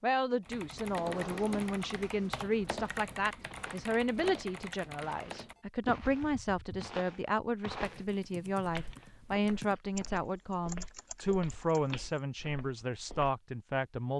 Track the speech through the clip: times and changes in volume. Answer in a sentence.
You can hear the speech from 0.0 to 14.1 s, at a steady volume.